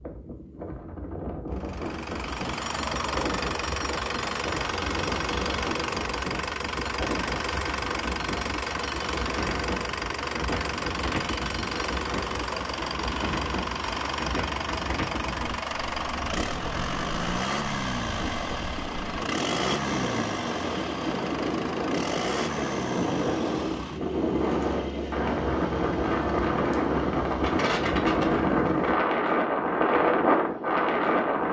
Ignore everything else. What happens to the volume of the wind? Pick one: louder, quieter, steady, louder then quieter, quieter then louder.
louder.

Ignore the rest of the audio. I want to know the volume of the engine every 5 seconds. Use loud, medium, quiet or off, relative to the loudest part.
loud, loud, loud, loud, loud, medium, off.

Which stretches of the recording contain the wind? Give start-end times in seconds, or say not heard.
0.0-31.4.